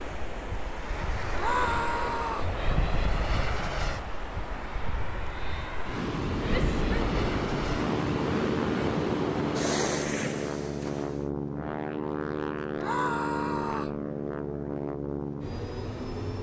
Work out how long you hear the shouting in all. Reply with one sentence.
The shouting can be heard for 3 seconds in total.